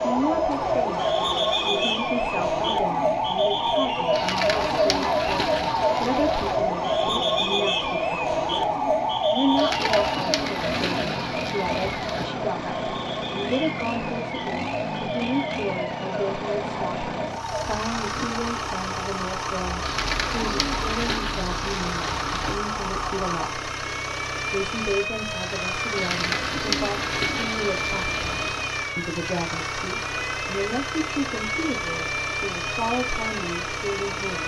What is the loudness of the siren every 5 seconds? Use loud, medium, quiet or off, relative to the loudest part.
loud, loud, medium, medium, medium, medium, medium.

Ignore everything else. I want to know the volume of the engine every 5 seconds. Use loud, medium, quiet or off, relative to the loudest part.
medium, medium, loud, loud, loud, loud, loud.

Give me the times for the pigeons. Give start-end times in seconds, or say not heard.
4.1-6.7, 9.6-12.3, 19.8-22.6, 25.9-28.6.